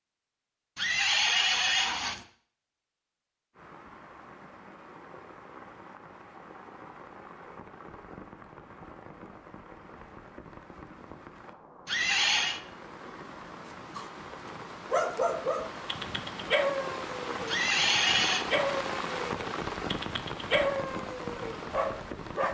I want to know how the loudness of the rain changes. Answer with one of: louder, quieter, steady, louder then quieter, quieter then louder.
louder.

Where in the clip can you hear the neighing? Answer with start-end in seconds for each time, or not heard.
0.8-2.2, 11.8-12.6, 17.4-18.4.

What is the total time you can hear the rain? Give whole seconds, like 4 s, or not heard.
19 s.